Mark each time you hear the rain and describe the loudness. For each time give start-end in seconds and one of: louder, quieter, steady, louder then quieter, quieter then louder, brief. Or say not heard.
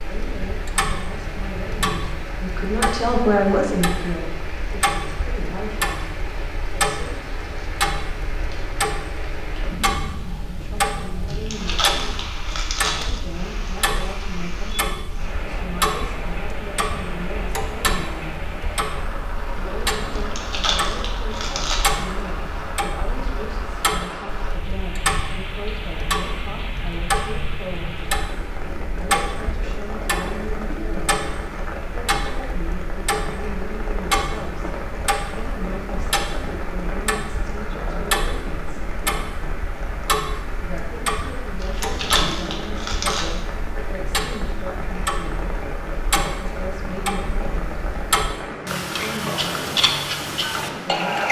0.0-51.2 steady.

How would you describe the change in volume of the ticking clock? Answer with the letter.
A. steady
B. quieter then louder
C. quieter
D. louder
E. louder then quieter
A.